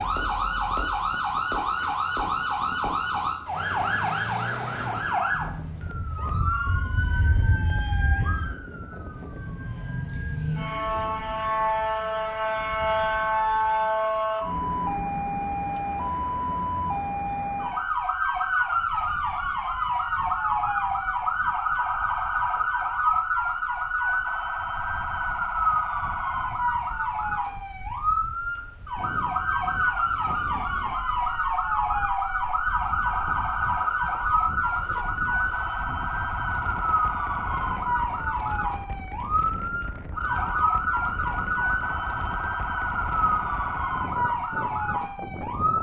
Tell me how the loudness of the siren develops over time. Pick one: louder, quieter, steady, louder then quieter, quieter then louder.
steady.